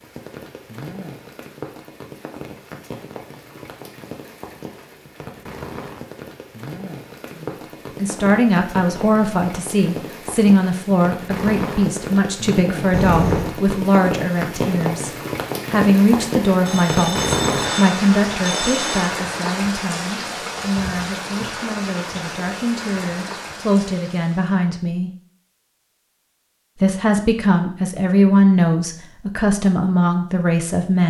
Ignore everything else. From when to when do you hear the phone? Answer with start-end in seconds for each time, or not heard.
12.9-13.6, 16.6-19.1.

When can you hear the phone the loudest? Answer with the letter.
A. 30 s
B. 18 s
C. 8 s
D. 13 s
D.